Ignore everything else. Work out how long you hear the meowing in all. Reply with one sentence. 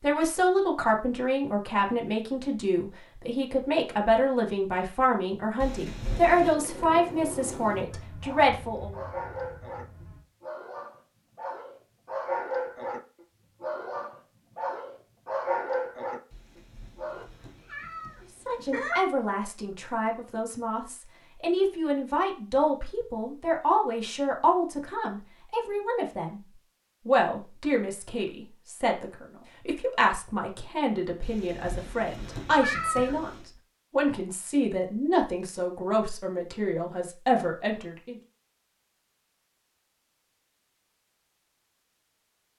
You can hear the meowing for 6 seconds altogether.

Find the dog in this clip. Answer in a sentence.
The dog can be heard from 8.2 to 13.0 s and from 13.6 to 17.2 s.